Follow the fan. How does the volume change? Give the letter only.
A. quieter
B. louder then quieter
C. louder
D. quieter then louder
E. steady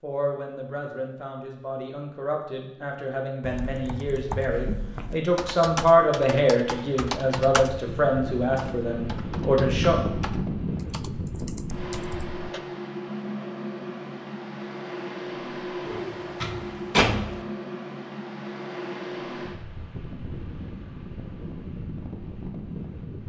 A.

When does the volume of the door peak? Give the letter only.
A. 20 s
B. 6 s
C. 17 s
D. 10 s
C.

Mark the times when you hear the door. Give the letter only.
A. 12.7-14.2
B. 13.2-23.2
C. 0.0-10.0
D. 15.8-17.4
D.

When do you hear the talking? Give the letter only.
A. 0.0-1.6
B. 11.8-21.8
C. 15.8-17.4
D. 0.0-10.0
D.